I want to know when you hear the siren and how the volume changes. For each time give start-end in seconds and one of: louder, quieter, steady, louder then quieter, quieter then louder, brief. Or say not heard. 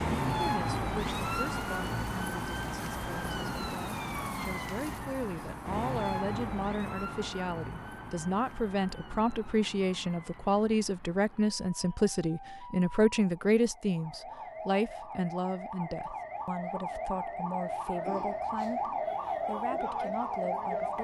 0.0-20.9 quieter then louder.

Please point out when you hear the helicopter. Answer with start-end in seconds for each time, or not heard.
not heard.